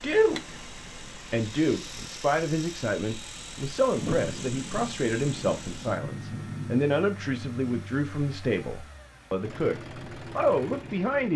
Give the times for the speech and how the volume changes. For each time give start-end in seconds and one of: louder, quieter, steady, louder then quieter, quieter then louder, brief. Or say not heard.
0.0-11.3 steady.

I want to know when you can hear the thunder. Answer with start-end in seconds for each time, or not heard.
4.0-7.9.